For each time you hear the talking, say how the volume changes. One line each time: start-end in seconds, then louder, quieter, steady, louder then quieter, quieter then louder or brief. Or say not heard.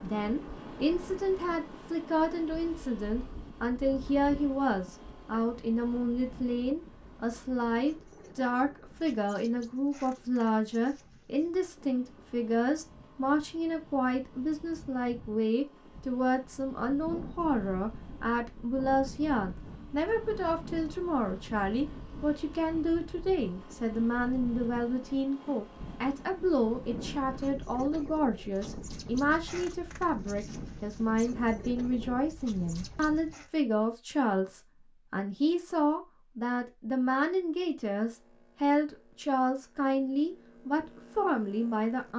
0.0-42.1 steady.